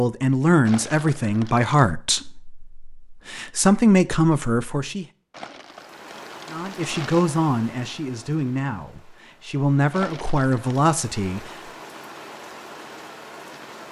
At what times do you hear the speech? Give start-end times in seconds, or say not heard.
0.0-5.0, 6.5-11.5.